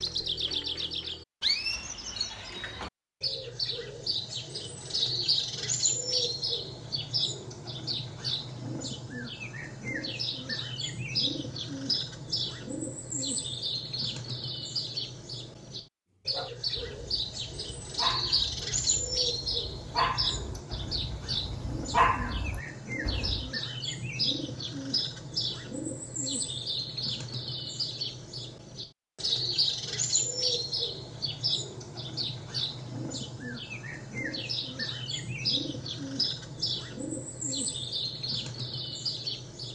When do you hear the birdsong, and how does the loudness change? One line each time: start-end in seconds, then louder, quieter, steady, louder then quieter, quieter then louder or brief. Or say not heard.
0.0-39.7 steady.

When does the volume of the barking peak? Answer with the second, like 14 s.
22 s.